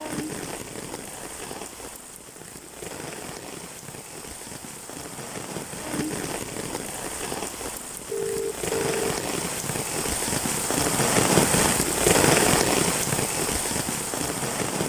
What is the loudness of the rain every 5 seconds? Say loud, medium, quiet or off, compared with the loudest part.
quiet, medium, loud.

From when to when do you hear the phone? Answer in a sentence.
The phone can be heard from 8.1 to 9.1 s.